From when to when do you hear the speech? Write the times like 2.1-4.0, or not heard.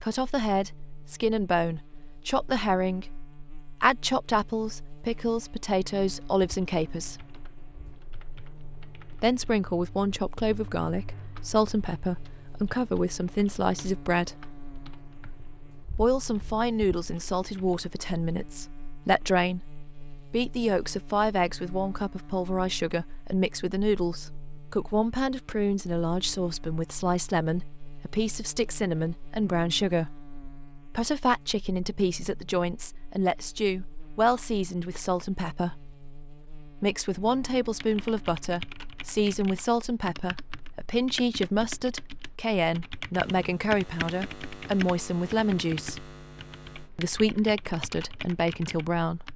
0.0-7.2, 9.2-14.5, 15.9-30.2, 30.9-36.0, 36.8-46.1, 47.0-49.3.